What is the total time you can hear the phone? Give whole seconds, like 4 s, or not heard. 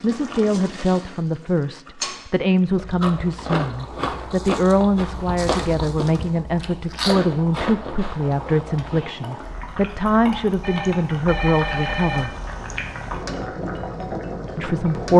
2 s.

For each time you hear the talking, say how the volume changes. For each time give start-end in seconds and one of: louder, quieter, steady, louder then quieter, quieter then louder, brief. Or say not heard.
0.0-12.3 steady
14.6-15.1 brief.